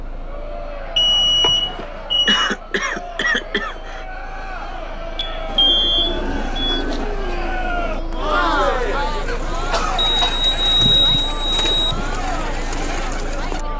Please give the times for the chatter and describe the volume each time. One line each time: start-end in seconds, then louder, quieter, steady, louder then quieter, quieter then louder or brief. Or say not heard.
0.1-13.7 louder then quieter.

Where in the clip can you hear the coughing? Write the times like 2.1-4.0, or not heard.
1.4-4.0, 9.2-10.4.